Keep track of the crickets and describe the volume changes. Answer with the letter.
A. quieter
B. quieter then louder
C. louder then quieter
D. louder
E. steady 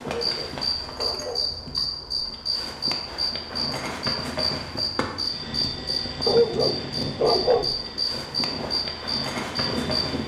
E.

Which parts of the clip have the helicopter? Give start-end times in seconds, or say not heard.
5.1-10.2.